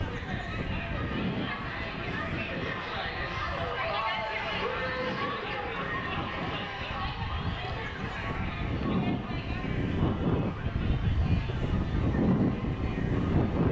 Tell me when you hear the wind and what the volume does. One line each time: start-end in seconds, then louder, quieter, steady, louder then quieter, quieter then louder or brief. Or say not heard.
0.0-13.6 quieter then louder.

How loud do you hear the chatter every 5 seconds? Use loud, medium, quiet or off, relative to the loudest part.
loud, loud, medium.